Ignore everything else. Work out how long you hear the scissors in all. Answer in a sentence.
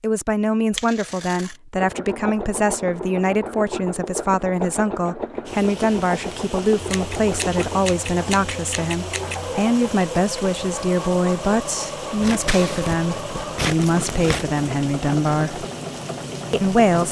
The scissors can be heard for 6 seconds in total.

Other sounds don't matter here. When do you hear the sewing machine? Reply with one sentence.
The sewing machine can be heard from 1.8 to 17.0 s.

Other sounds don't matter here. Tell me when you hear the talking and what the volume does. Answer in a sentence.
You can hear the talking from 0.0 to 15.7 s, at a steady volume; and briefly from 16.5 to 17.0 s.